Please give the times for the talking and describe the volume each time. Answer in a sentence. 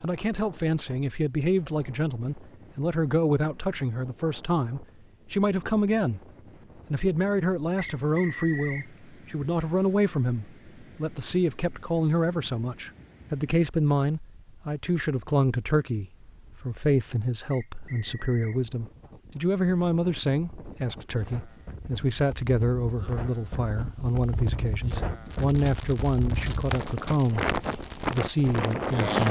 You can hear the talking from 0.0 to 6.2 s, at a steady volume; and from 6.9 to 29.2 s, at a steady volume.